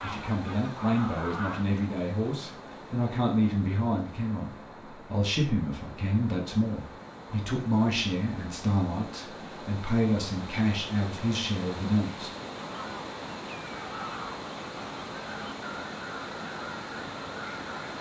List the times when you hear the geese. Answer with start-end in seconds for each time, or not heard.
0.0-1.8, 12.7-17.9.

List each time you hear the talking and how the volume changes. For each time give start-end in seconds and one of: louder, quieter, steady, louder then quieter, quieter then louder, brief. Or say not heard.
0.0-12.3 steady.